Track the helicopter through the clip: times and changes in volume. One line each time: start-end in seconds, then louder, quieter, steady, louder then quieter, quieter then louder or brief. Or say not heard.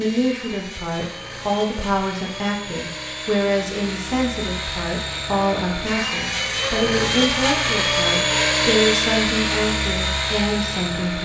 0.0-11.2 louder.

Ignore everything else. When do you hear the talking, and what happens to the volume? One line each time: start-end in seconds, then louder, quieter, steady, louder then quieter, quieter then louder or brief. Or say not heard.
0.0-11.2 steady.